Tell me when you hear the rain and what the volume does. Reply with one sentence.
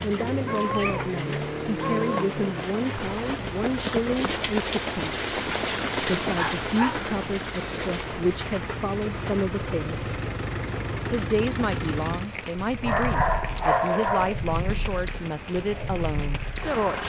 The rain can be heard from 0.0 to 17.0 s, getting louder then quieter.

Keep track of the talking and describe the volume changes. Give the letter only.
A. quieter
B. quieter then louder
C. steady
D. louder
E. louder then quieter
C.